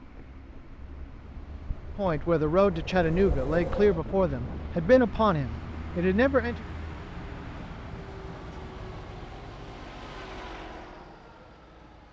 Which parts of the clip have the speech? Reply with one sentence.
The speech can be heard from 1.9 to 6.5 s.